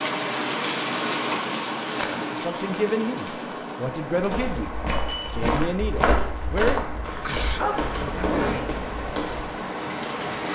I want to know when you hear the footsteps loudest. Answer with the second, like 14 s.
6 s.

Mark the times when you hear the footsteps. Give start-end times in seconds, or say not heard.
4.2-9.6.